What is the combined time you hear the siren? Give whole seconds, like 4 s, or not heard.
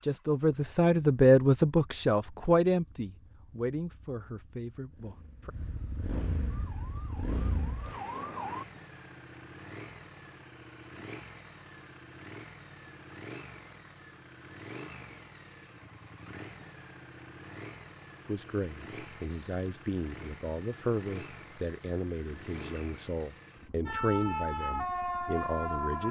4 s.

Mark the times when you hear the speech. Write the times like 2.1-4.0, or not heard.
0.0-5.5, 18.2-26.0.